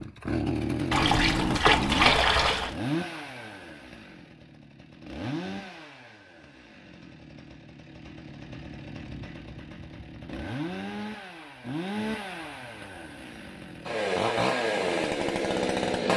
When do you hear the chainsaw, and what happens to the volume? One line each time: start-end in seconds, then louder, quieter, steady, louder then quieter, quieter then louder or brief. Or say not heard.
0.0-16.1 quieter then louder.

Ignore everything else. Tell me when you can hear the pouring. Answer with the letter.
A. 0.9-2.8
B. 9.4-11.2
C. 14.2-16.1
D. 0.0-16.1
A.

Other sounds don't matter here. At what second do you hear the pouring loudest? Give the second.
2 s.